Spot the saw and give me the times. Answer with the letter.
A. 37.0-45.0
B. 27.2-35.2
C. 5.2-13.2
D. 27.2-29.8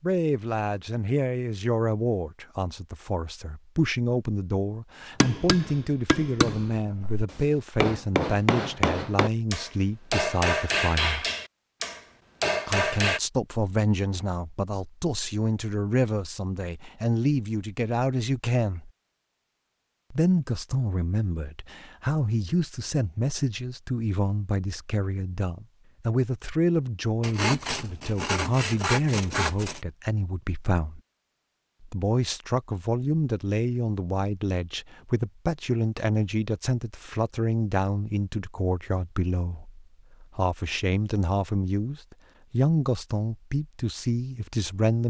D.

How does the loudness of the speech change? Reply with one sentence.
The volume of the speech stays about the same.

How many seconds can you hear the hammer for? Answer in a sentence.
The hammer can be heard for 8 seconds in total.